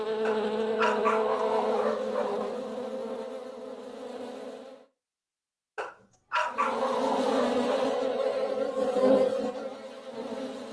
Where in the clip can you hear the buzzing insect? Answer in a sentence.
You can hear the buzzing insect from 0.0 to 4.8 s and from 6.5 to 10.6 s.